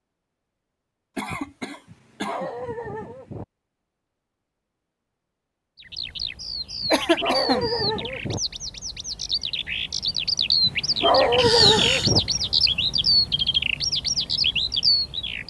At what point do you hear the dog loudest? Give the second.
11 s.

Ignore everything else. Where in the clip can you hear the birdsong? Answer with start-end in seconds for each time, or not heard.
5.8-15.4.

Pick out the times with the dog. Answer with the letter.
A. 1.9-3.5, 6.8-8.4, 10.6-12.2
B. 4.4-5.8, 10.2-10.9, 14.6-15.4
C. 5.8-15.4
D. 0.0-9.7
A.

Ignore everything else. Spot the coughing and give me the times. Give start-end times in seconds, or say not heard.
1.1-2.5, 6.9-7.7, 11.3-12.2.